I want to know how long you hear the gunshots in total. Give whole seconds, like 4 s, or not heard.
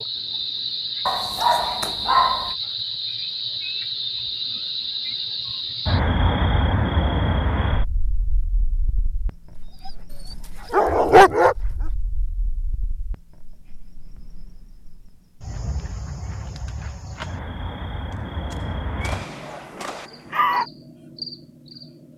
2 s.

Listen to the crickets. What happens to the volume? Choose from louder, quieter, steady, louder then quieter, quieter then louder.
quieter then louder.